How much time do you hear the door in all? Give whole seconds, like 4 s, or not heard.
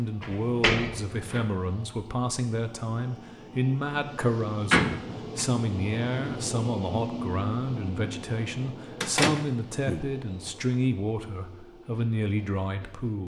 3 s.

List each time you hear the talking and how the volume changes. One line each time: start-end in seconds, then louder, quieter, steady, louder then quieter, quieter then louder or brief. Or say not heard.
0.0-13.2 steady.